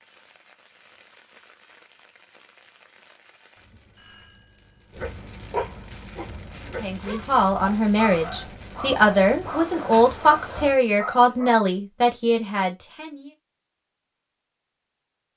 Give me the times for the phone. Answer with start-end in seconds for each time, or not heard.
4.0-4.9.